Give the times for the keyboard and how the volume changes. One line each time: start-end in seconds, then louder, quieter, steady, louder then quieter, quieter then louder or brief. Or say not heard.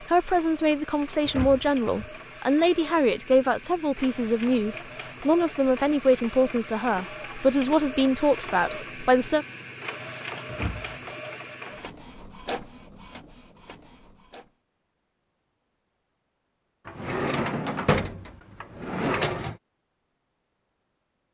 not heard.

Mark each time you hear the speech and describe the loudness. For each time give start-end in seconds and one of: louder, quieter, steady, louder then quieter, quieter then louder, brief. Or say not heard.
0.0-9.4 steady.